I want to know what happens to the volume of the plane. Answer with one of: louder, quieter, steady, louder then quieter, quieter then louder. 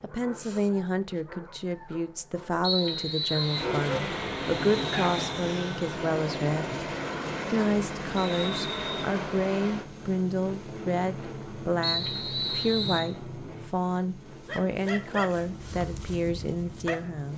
quieter.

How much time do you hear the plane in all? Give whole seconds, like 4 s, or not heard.
14 s.